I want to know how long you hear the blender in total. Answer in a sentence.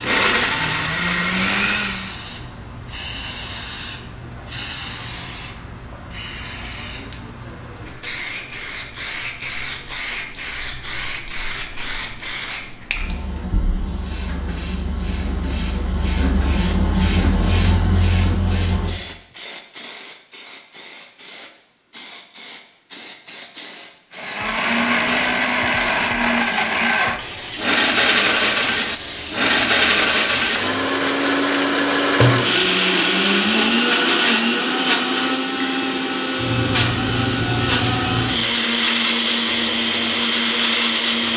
The blender can be heard for 19 seconds in total.